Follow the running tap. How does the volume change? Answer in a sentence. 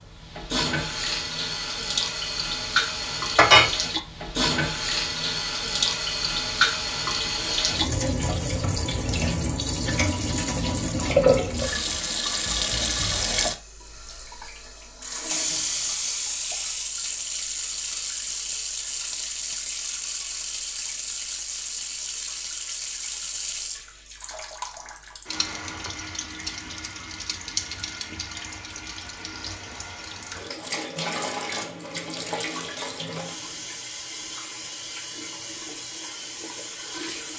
The volume of the running tap goes down.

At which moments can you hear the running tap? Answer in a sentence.
The running tap can be heard from 0.0 to 37.3 s.